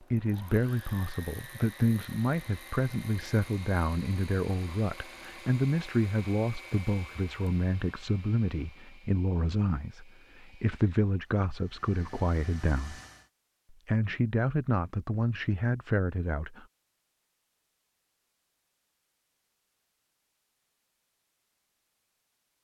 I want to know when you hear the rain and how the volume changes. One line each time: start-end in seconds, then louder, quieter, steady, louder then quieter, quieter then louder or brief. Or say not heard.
not heard.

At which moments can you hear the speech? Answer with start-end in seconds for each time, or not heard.
0.1-13.0, 13.8-16.6.